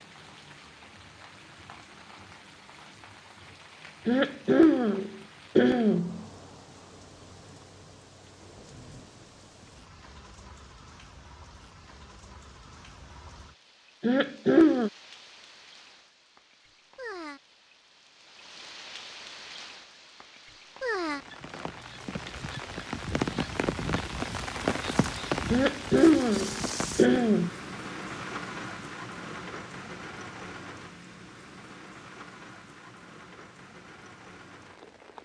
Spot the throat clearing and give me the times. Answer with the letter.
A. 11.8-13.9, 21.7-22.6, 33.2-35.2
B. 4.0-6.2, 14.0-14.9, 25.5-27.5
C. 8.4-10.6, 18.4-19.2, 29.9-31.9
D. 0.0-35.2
B.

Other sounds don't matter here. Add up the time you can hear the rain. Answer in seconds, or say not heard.
35 s.